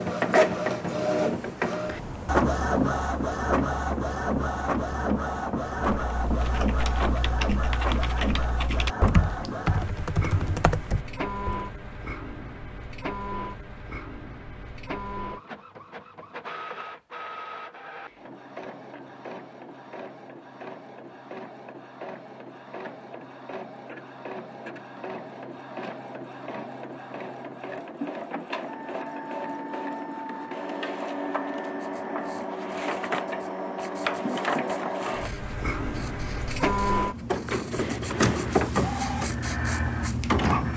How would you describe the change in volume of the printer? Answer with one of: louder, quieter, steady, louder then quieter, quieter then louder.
quieter then louder.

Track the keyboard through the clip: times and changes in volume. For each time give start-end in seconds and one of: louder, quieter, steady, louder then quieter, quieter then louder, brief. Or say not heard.
6.0-11.7 louder.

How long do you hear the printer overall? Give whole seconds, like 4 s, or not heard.
41 s.